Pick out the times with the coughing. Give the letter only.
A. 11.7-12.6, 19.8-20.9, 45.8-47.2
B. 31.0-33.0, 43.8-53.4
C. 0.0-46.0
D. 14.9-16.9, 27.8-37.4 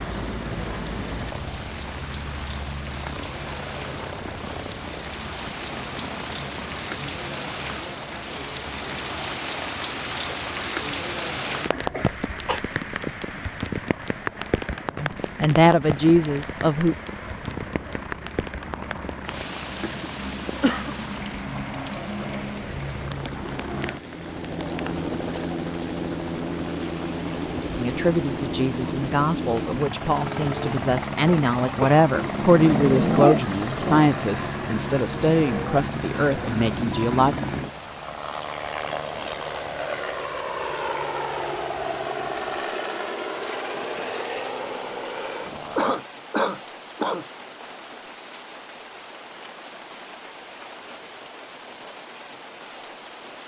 A.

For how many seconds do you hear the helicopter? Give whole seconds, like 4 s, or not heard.
46 s.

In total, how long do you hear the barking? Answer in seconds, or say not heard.
2 s.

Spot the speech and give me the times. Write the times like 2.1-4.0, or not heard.
14.9-16.9, 27.8-37.4.